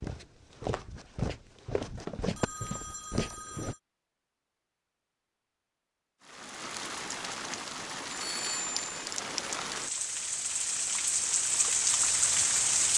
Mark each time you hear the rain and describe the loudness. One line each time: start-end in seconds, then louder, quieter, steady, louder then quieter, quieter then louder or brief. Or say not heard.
6.2-12.9 louder.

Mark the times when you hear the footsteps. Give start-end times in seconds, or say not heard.
0.0-3.8.